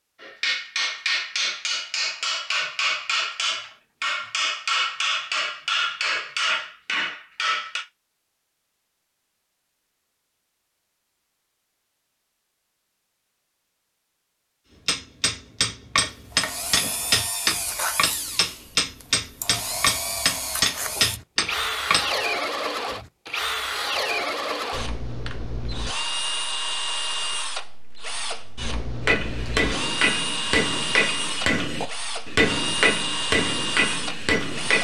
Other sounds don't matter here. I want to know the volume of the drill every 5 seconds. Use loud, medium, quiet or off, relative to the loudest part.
off, off, off, medium, loud, loud, loud.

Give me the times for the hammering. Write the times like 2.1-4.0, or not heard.
0.2-7.8, 14.8-22.1, 29.1-34.7.